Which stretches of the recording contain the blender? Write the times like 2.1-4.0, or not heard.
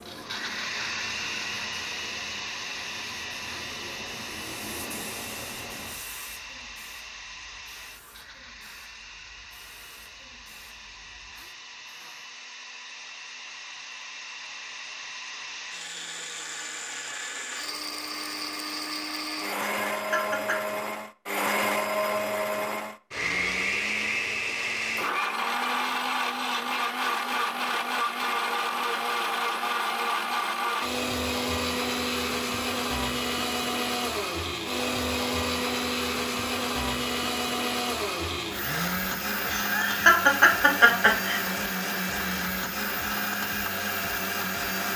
0.0-44.9.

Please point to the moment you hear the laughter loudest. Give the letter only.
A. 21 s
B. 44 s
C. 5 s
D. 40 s
D.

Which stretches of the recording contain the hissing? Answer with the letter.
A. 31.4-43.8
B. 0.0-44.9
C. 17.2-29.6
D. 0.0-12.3
D.